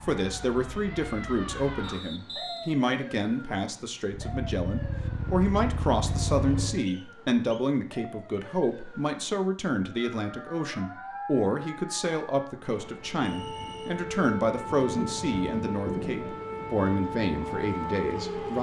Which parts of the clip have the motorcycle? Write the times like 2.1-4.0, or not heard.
0.0-1.8, 4.0-6.8.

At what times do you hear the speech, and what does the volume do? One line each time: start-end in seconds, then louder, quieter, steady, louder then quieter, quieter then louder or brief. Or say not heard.
0.0-18.5 steady.